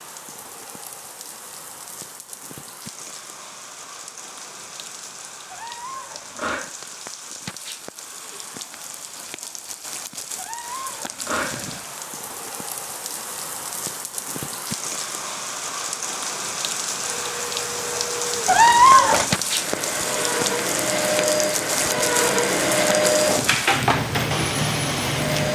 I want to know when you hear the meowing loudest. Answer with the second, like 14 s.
19 s.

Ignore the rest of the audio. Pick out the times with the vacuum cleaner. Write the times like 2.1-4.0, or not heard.
16.9-25.5.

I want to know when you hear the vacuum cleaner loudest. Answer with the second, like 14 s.
23 s.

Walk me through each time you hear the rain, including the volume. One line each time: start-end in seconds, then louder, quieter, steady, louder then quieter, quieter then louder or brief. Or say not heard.
0.0-25.5 louder.